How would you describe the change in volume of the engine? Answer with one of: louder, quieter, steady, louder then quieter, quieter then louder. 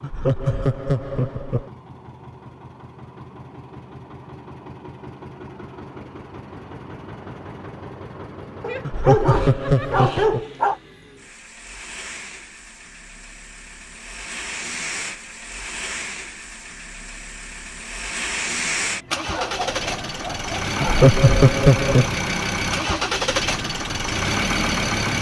louder.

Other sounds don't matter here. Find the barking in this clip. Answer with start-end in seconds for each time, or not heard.
8.6-10.8, 19.3-21.1.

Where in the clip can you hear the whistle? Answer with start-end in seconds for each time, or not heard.
not heard.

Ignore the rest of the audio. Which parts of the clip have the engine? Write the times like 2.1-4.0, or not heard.
0.0-25.1.